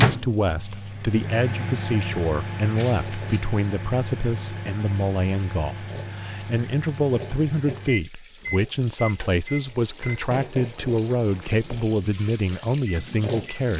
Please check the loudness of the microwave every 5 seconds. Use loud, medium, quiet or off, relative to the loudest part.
loud, medium, quiet.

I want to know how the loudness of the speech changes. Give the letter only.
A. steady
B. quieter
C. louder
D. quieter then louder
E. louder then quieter
A.